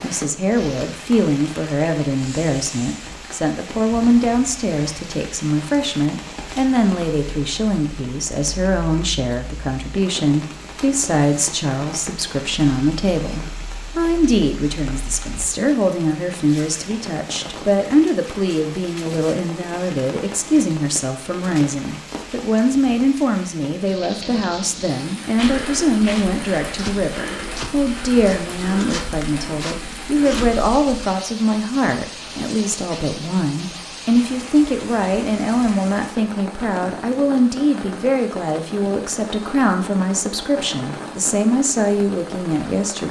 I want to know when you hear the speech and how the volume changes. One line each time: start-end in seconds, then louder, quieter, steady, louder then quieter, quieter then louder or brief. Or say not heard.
0.0-43.0 steady.